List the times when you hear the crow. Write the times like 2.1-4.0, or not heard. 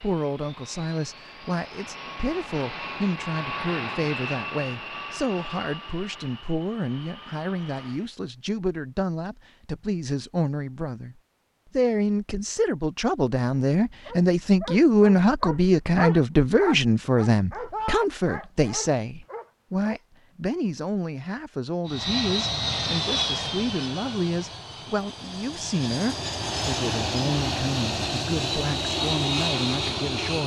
not heard.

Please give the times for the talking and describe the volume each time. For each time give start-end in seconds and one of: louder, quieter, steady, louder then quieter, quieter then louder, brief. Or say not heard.
0.0-11.2 steady
11.8-30.4 quieter.